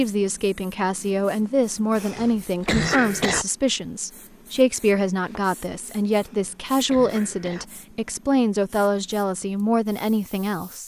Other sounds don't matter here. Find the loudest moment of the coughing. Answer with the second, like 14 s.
3 s.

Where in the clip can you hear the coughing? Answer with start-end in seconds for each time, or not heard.
1.9-3.5, 6.2-7.7.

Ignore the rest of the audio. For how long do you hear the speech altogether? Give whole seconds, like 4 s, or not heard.
11 s.